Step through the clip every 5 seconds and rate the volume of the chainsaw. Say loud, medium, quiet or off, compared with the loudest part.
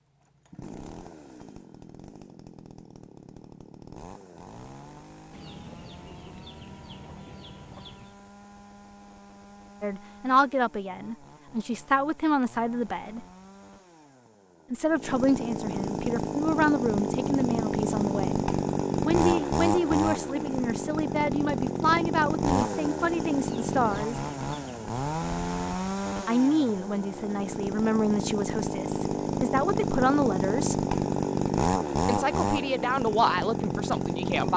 quiet, quiet, quiet, loud, loud, loud, loud.